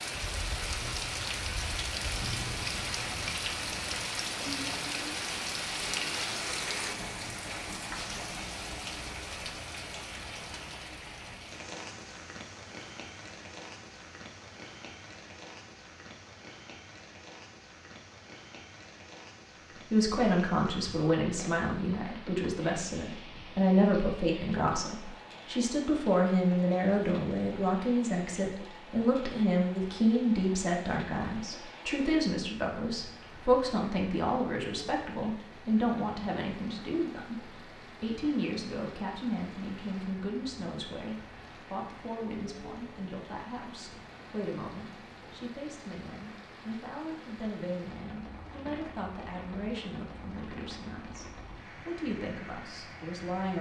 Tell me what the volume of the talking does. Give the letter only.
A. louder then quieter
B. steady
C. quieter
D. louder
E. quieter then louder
C.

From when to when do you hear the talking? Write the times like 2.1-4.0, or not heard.
19.9-53.5.